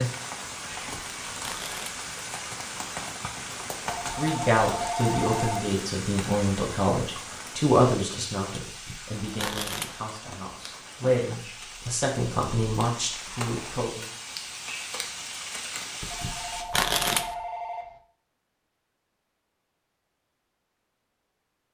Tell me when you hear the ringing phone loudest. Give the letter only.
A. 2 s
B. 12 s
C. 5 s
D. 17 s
C.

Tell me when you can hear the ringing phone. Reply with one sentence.
The ringing phone can be heard from 3.9 to 5.8 s and from 16.1 to 18.0 s.